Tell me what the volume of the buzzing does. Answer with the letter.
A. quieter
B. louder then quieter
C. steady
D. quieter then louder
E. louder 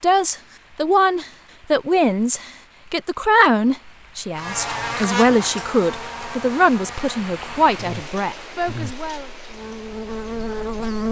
D.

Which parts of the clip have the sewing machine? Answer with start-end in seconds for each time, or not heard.
not heard.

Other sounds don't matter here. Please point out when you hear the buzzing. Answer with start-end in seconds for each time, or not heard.
4.3-11.0.